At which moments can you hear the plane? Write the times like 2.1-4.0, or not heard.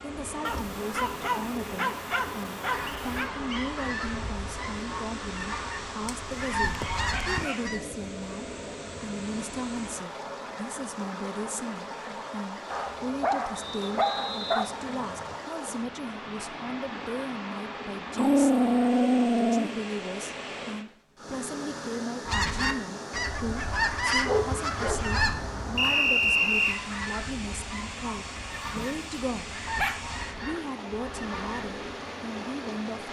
not heard.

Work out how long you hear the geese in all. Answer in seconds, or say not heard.
15 s.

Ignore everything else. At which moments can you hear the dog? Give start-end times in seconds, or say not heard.
0.5-3.3, 6.0-7.6, 12.7-14.7, 18.1-19.7, 24.2-25.9, 28.6-30.0.